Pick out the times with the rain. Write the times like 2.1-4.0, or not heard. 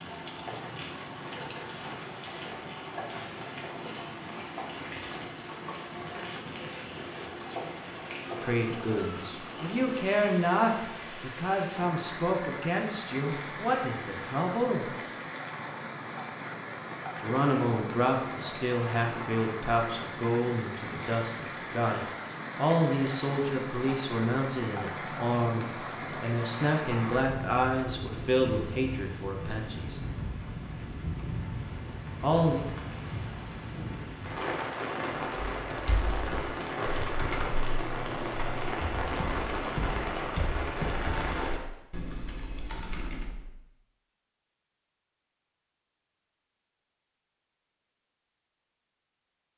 0.0-41.6.